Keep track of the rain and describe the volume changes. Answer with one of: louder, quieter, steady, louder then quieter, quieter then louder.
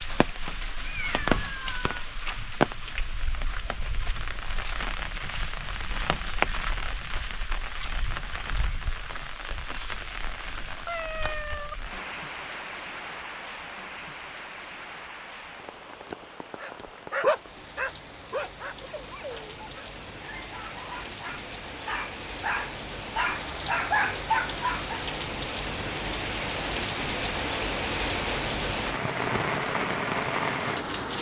quieter then louder.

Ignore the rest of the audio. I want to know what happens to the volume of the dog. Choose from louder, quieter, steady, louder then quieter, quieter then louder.
quieter then louder.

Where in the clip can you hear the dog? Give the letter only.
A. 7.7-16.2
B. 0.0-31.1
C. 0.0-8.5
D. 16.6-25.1
D.